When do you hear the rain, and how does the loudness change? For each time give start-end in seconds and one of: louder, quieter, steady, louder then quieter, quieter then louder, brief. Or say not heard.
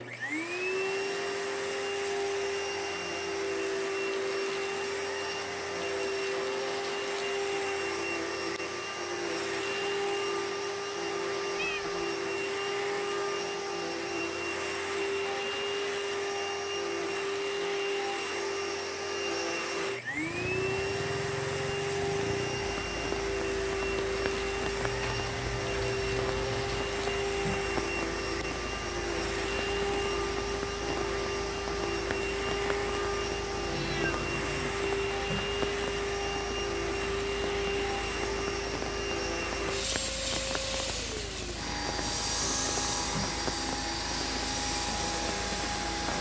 20.0-46.1 steady.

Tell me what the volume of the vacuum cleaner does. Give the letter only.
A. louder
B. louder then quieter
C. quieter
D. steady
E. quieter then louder
D.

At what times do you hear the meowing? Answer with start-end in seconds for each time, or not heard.
11.5-12.1, 24.8-26.9, 33.6-34.8.